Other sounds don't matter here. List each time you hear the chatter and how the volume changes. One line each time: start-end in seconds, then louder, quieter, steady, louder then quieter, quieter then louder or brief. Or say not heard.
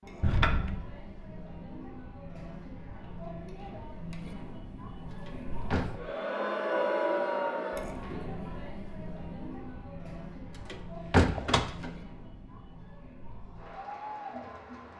0.0-14.9 louder then quieter.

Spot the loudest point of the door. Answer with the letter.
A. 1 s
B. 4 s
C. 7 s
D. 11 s
D.